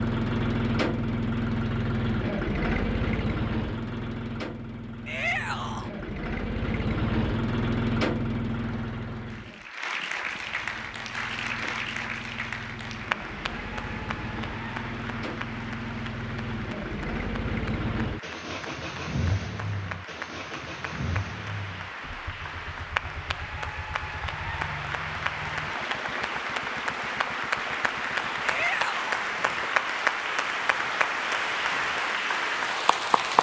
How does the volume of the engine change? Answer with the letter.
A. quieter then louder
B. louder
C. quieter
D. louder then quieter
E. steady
C.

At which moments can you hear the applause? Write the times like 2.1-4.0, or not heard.
8.4-33.3.